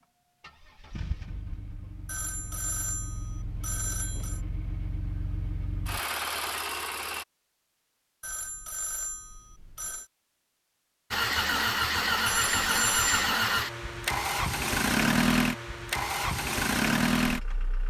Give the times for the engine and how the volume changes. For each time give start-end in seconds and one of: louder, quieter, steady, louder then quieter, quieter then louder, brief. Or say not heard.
0.4-7.2 louder
11.1-17.8 steady.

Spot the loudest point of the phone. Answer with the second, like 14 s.
13 s.